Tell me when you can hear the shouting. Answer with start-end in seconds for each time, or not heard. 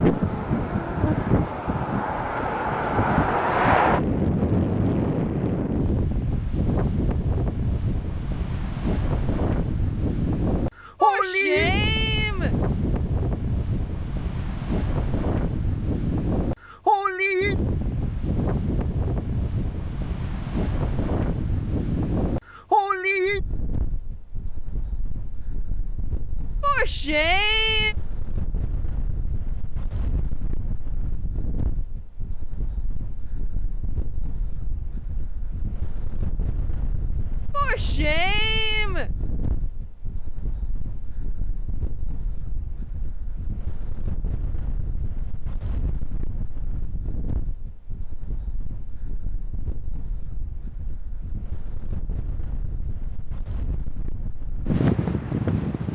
11.0-12.6, 26.6-27.9, 37.5-39.1.